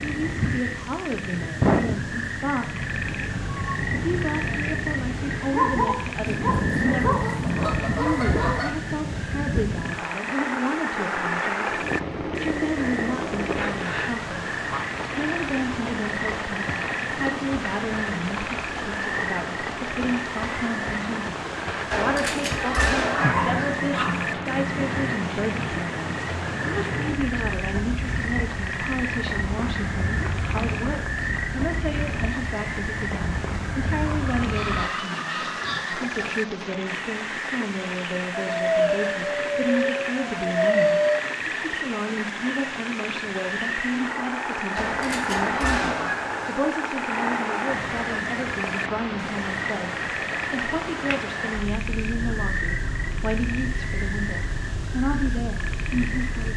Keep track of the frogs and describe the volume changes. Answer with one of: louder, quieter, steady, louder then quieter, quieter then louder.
steady.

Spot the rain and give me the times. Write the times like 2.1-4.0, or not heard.
0.0-56.5.